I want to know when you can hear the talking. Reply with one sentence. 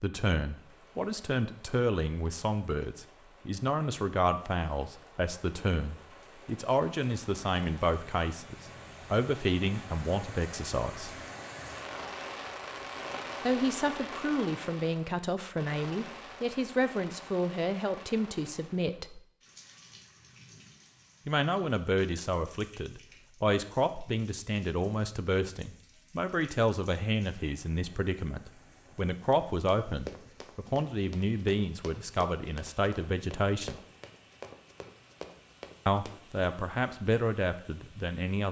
The talking can be heard from 0.0 to 11.2 s, from 13.4 to 19.2 s, from 21.2 to 33.8 s and from 35.9 to 38.4 s.